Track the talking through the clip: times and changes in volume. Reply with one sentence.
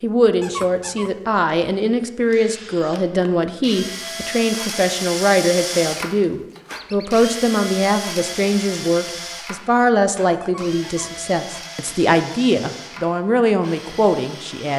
The talking can be heard from 0.0 to 14.7 s, at a steady volume.